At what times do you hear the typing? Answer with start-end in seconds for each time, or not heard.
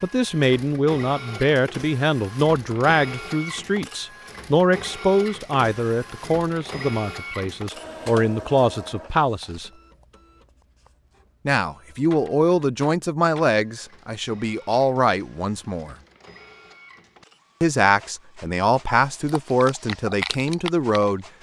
19.2-21.2.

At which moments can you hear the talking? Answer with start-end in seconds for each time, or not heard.
0.0-9.7, 11.4-15.9, 17.6-21.2.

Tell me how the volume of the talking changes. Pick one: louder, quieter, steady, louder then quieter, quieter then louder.
steady.